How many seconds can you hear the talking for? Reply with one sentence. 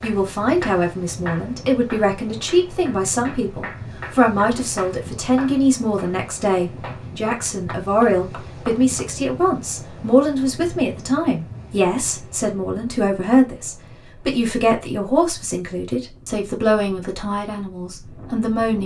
You can hear the talking for 19 seconds altogether.